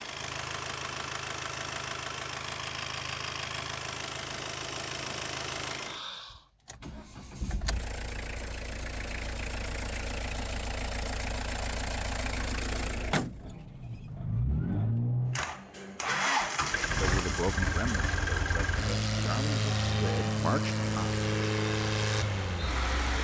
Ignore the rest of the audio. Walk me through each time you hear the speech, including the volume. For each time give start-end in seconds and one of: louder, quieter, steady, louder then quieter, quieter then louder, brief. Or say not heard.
16.9-21.1 quieter then louder.